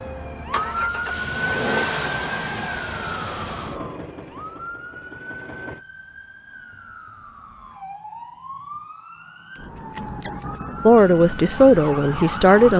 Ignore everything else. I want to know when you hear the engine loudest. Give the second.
2 s.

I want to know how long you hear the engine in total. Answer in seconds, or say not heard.
6 s.